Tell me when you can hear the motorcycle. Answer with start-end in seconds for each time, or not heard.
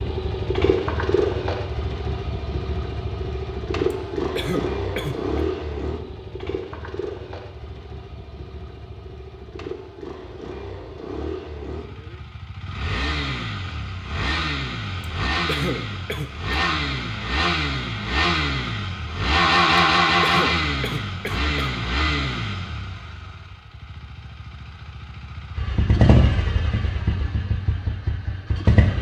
0.0-28.9.